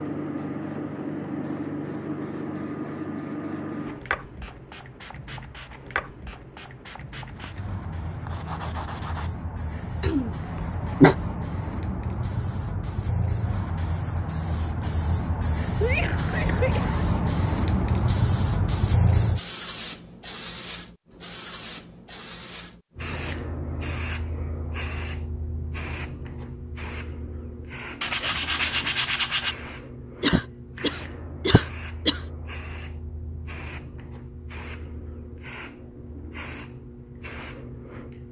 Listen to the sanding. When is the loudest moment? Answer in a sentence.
The loudest moment of the sanding is at 29 seconds.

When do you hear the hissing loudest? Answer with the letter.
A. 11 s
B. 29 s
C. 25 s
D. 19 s
D.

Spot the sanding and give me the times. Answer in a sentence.
You can hear the sanding from 7.3 to 9.3 s and from 28.0 to 29.6 s.